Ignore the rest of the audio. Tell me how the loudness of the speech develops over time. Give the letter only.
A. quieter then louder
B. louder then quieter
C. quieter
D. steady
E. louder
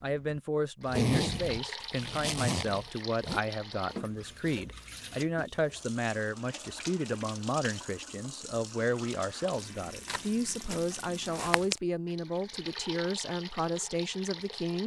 D.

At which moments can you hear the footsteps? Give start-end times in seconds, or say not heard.
10.1-11.8.